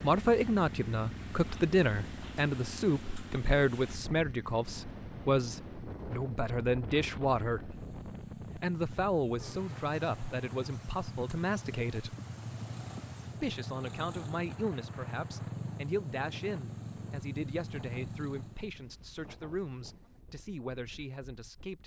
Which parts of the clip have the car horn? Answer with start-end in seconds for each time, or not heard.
not heard.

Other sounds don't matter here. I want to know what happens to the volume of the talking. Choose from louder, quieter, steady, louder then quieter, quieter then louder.
quieter.